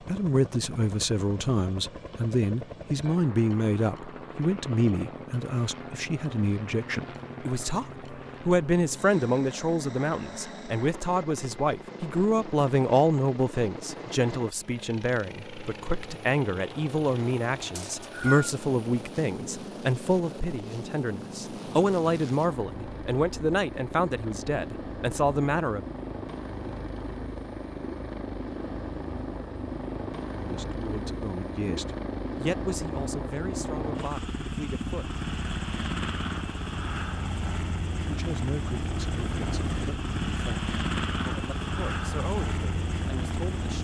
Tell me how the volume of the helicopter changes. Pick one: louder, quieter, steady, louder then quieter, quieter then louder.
louder.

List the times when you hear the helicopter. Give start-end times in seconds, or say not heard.
0.0-43.7.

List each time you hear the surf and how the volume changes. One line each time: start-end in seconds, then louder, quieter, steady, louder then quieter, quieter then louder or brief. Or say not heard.
not heard.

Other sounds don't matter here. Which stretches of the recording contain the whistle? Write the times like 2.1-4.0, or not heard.
17.8-18.5.